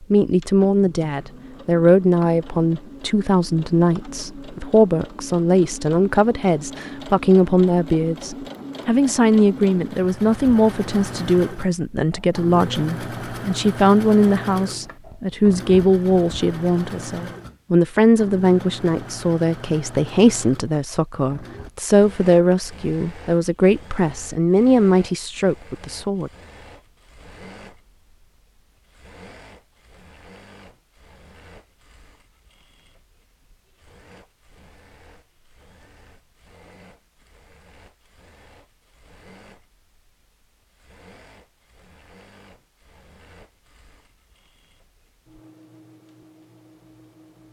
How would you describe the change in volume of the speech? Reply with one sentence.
The volume of the speech stays about the same.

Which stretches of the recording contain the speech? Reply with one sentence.
You can hear the speech from 0.0 to 26.3 s.